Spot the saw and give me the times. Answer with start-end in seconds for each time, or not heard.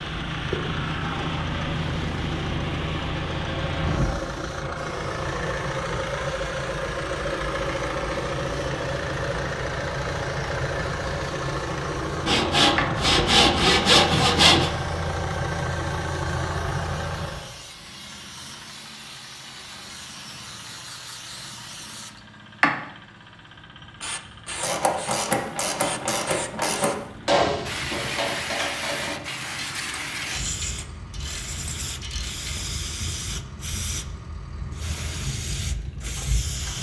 12.2-14.7.